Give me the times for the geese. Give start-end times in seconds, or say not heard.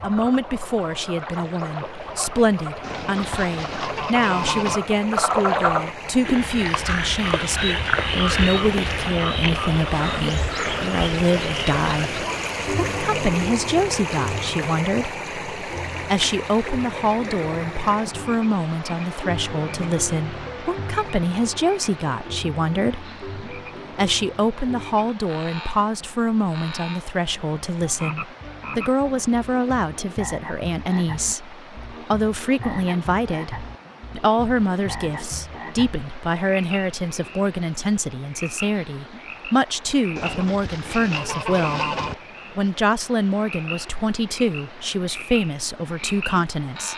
2.8-4.8, 40.1-42.1.